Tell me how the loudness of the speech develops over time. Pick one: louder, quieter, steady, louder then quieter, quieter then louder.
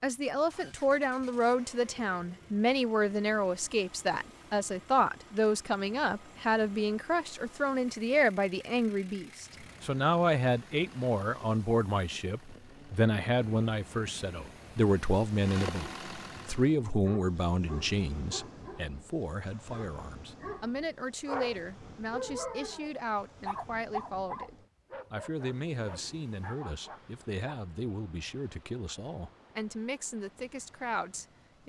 quieter.